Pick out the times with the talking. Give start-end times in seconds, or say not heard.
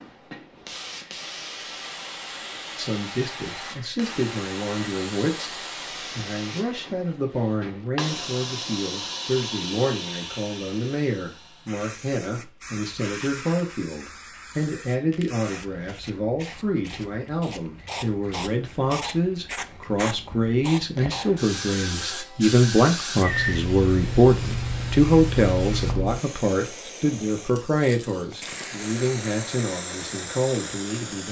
2.8-31.2.